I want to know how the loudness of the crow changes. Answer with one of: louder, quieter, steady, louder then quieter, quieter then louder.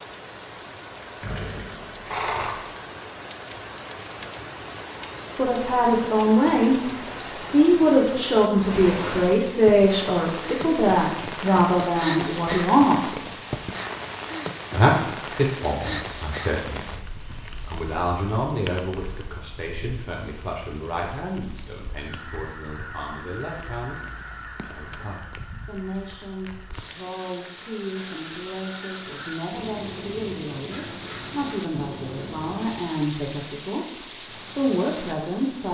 quieter then louder.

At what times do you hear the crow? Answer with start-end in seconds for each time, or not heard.
21.9-32.9.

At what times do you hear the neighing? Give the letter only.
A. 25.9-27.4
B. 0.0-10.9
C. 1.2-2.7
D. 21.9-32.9
C.